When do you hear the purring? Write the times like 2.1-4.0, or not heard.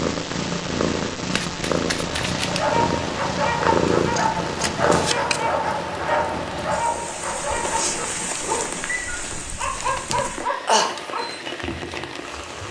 0.0-8.7.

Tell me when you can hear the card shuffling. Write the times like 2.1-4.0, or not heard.
1.3-2.6, 4.5-5.5, 9.2-10.2.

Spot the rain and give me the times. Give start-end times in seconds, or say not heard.
2.2-12.6.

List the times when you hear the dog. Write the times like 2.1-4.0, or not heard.
2.0-11.5.